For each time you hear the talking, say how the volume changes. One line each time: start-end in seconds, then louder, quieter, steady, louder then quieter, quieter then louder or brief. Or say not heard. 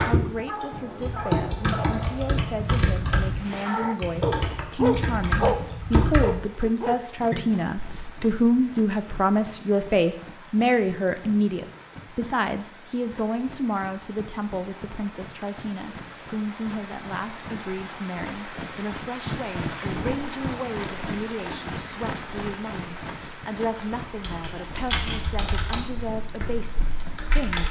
0.0-27.6 louder then quieter.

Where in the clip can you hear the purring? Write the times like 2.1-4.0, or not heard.
not heard.